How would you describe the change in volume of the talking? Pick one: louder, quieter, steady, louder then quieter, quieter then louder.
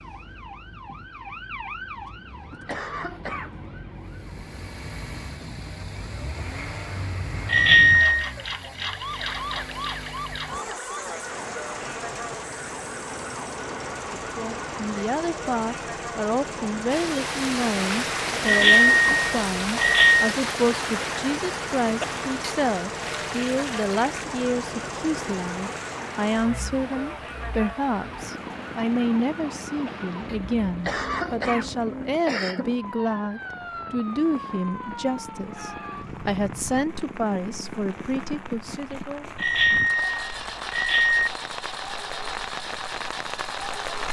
steady.